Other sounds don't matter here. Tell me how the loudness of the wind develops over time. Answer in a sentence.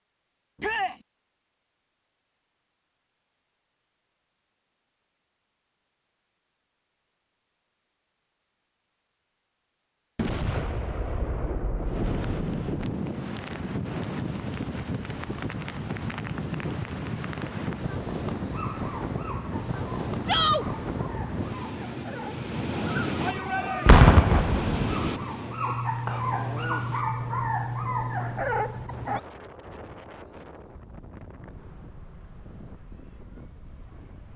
The loudness of the wind goes down.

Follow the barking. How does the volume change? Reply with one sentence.
The volume of the barking goes up.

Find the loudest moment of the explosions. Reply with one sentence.
The volume of the explosions peaks at 24 seconds.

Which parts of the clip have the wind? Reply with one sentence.
You can hear the wind from 11.8 to 34.3 s.